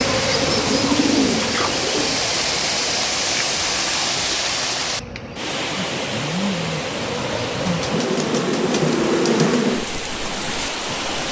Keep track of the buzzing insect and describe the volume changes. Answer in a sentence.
The volume of the buzzing insect goes down, then up.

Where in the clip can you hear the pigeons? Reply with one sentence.
The pigeons can be heard from 0.3 to 2.2 s and from 7.5 to 9.5 s.